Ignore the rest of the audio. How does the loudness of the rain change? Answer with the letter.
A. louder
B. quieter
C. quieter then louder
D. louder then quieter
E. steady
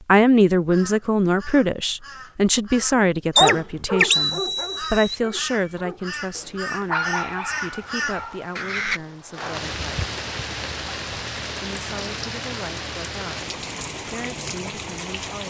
A.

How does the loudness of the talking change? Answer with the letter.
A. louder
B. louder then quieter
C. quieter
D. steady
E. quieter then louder
C.